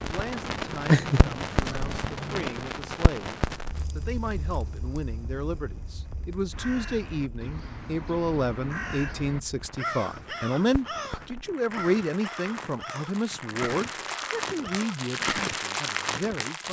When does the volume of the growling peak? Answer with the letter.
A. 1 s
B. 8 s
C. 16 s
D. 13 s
A.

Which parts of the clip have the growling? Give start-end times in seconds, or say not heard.
0.8-2.5.